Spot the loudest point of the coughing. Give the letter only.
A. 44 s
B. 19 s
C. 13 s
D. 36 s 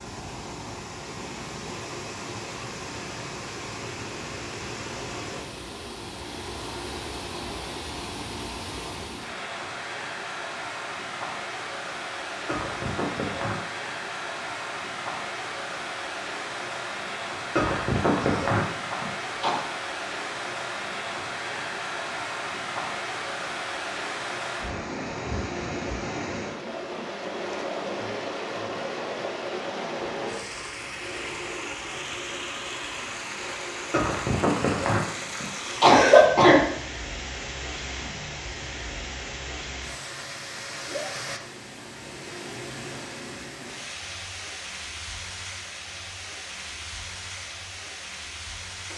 D.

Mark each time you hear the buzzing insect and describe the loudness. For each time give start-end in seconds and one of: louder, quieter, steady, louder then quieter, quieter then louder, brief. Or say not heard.
not heard.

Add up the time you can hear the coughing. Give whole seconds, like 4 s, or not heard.
6 s.